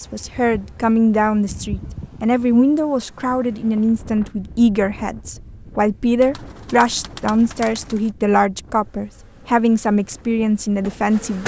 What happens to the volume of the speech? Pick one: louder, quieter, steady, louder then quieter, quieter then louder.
steady.